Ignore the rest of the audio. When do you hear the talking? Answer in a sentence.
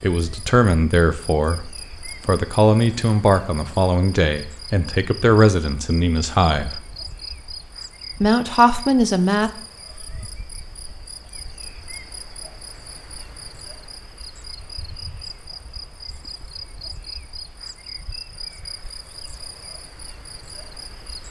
The talking can be heard from 0.0 to 6.8 s and from 8.2 to 9.5 s.